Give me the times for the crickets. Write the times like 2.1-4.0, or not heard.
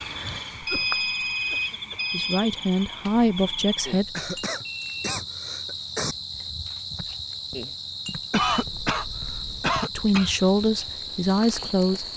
0.0-12.1.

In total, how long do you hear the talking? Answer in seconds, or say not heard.
4 s.